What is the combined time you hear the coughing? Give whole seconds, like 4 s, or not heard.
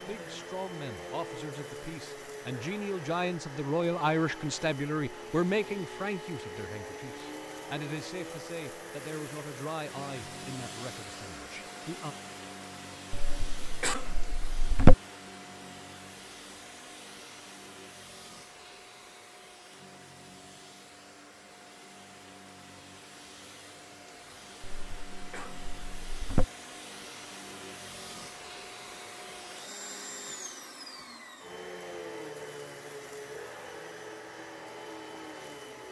4 s.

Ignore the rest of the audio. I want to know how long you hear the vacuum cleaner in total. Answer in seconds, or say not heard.
36 s.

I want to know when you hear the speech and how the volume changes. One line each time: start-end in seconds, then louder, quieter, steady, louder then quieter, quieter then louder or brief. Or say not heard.
0.0-12.2 louder then quieter.